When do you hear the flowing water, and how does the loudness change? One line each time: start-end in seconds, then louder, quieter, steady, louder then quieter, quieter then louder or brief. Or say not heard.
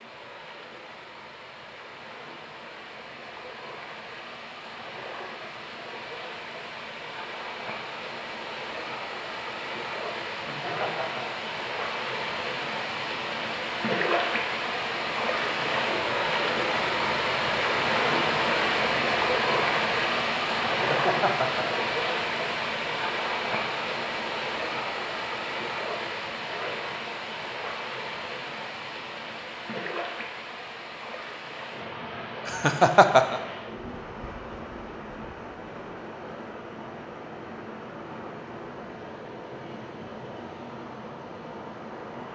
0.0-42.3 louder then quieter.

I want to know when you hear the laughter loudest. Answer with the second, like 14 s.
33 s.